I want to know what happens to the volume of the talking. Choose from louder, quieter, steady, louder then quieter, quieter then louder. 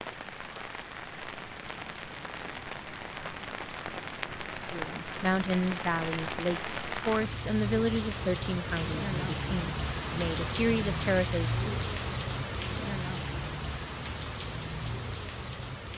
quieter then louder.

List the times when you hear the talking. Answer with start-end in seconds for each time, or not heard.
4.7-11.8.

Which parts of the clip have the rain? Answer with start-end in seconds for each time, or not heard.
0.0-15.9.